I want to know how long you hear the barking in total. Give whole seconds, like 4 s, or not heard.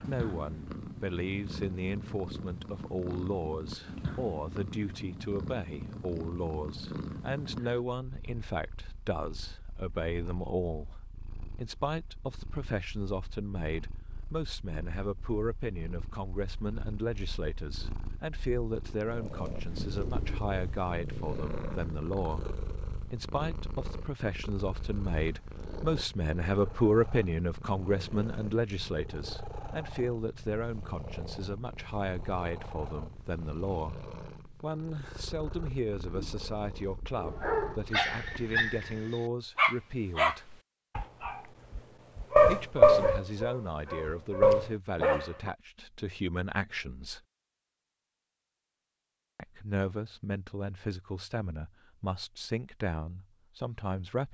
8 s.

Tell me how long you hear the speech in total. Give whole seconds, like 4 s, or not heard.
49 s.